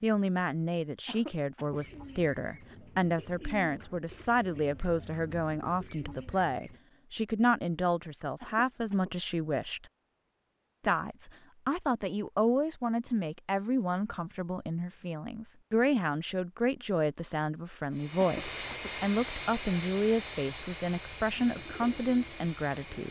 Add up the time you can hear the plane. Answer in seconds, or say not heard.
5 s.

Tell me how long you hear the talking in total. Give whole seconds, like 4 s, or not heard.
22 s.